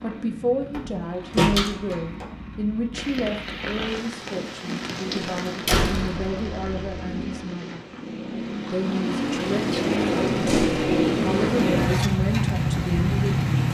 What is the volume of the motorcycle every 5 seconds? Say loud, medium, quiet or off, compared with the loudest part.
quiet, medium, loud.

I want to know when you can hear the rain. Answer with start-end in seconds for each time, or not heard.
2.9-13.6.